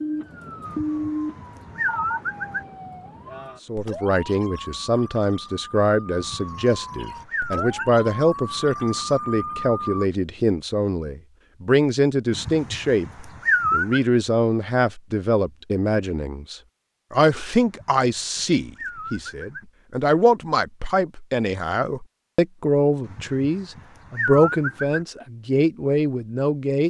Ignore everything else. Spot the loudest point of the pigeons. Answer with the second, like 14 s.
14 s.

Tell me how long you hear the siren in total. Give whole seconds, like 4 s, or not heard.
10 s.